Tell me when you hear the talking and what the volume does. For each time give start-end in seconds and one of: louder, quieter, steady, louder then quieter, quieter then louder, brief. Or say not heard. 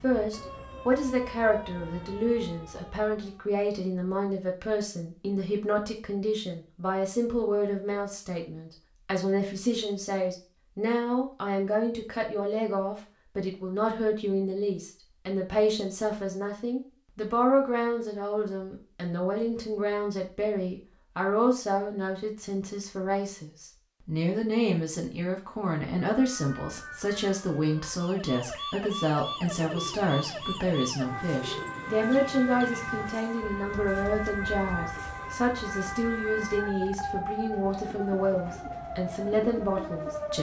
0.0-40.3 steady.